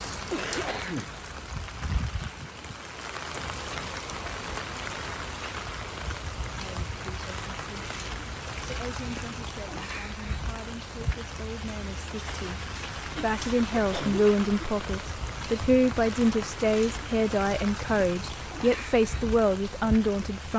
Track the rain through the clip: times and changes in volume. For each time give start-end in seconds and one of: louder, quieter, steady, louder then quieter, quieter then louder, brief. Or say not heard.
0.0-20.5 steady.